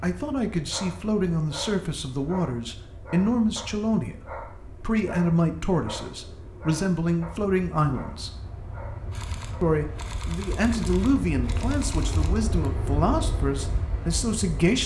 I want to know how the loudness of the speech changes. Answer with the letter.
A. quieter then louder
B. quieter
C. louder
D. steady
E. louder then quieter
D.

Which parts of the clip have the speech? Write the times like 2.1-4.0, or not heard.
0.0-8.3, 9.6-14.8.